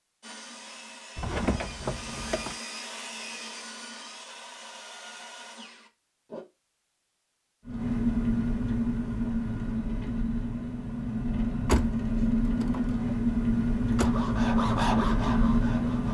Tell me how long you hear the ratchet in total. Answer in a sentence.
The ratchet can't be heard in this clip.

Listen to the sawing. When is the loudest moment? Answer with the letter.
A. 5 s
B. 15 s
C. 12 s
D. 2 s
B.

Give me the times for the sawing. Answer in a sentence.
The sawing can be heard from 0.2 to 6.5 s and from 14.0 to 16.1 s.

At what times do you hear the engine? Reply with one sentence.
The engine can be heard from 7.7 to 16.1 s.